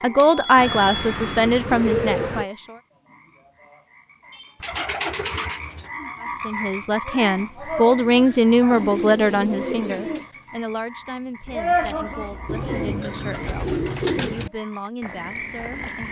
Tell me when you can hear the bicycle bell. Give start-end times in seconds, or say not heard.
0.1-1.4, 11.4-13.3.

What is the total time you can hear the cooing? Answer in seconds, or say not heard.
7 s.